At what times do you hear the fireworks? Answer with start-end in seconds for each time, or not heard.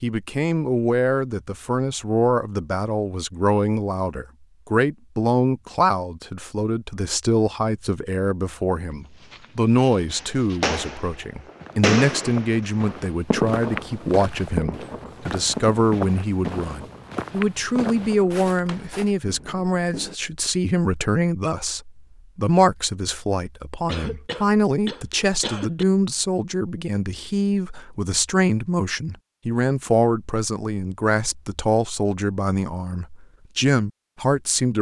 10.1-20.1.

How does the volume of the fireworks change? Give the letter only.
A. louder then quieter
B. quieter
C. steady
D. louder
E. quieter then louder
B.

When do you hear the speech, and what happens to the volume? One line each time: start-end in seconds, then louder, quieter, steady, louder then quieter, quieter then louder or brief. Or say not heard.
0.0-34.7 steady.